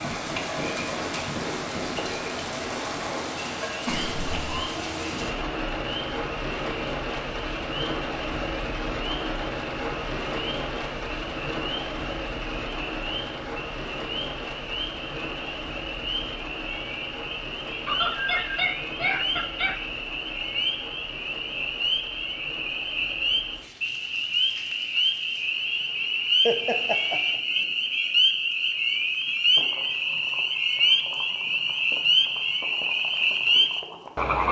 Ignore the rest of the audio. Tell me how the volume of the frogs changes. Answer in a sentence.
The volume of the frogs goes up.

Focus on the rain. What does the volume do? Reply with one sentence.
The volume of the rain goes down.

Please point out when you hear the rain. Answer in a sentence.
You can hear the rain from 0.0 to 34.4 s.